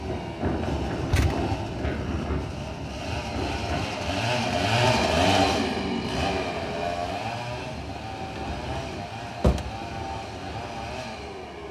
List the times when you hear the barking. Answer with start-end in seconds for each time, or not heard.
not heard.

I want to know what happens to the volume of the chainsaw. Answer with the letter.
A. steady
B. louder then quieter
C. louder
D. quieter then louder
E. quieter
B.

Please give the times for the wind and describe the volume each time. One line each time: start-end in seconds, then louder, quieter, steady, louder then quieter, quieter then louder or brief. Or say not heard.
0.0-11.6 quieter.